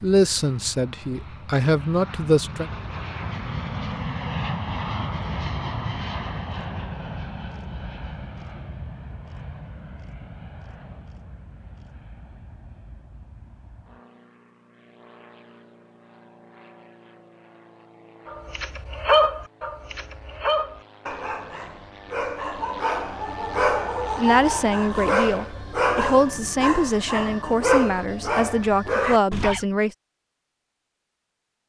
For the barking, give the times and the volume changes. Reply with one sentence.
The barking can be heard from 18.2 to 29.6 s, getting quieter then louder.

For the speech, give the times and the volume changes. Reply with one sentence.
The speech can be heard briefly from 0.0 to 2.6 s; and from 24.1 to 29.9 s, at a steady volume.